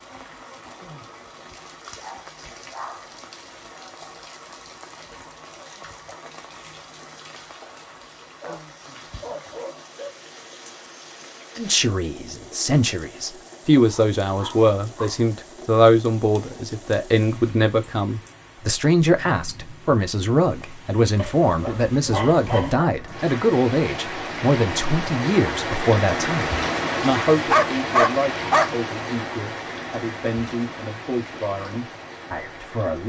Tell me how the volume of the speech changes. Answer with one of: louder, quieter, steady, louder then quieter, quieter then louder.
quieter.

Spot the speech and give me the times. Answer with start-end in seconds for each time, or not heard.
11.6-33.0.